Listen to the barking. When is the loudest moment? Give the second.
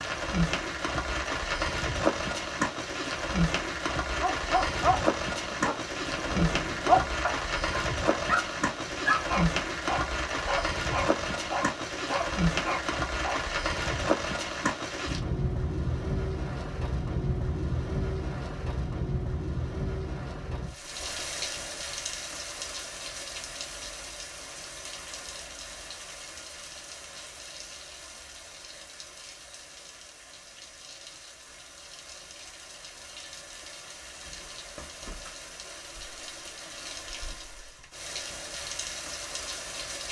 7 s.